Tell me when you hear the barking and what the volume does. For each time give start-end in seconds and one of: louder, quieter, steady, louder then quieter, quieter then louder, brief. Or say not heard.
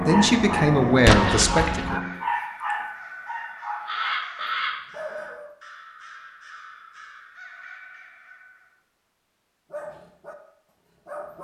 0.0-5.5 quieter
9.7-11.4 brief.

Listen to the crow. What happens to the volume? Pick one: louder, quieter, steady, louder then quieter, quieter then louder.
louder then quieter.